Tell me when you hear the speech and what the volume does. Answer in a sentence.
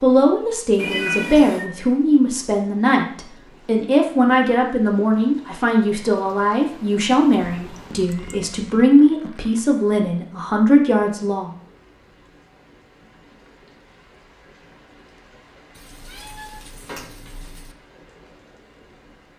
You can hear the speech from 0.0 to 11.5 s, at a steady volume.